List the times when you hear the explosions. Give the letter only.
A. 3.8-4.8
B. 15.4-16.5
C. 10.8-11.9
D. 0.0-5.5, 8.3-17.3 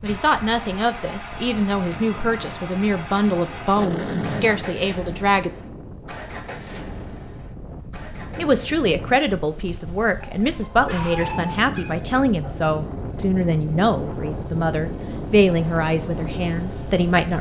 A.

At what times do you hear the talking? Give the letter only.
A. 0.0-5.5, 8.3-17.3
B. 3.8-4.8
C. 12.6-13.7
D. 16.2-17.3
A.